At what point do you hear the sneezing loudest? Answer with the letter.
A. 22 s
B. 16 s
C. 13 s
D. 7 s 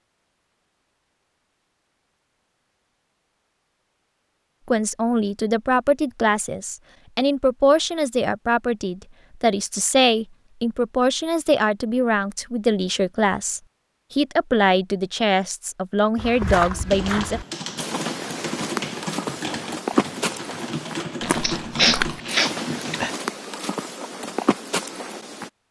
A.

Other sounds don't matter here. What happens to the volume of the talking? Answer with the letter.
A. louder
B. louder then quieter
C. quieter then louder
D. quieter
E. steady
E.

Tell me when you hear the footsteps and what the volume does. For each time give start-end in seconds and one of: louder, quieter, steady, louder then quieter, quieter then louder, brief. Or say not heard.
16.1-25.5 steady.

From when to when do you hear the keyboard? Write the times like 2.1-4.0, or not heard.
16.9-23.1.